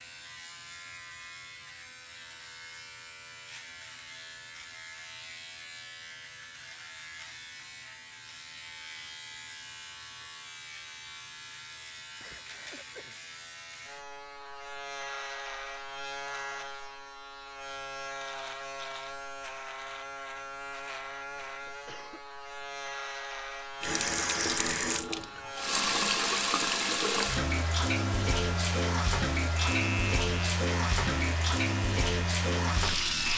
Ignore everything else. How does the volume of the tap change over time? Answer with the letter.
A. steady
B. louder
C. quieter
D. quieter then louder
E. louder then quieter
A.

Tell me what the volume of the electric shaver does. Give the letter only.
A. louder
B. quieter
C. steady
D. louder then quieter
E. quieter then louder
A.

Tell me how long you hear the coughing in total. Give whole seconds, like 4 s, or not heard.
2 s.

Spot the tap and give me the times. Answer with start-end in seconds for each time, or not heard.
23.8-33.3.